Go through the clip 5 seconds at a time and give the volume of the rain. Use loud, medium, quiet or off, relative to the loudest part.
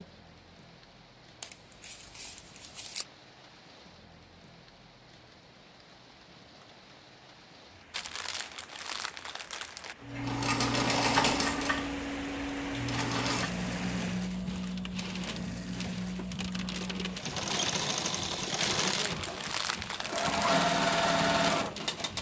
quiet, quiet, loud, loud, loud.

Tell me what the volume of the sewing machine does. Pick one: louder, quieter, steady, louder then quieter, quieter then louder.
quieter then louder.